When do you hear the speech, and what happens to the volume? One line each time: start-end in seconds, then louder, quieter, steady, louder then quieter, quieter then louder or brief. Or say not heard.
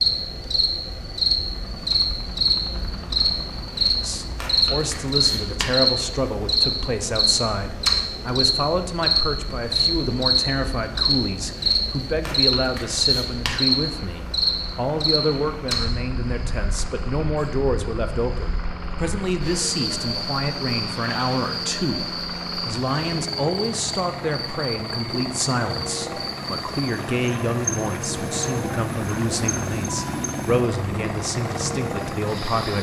4.0-32.7 steady.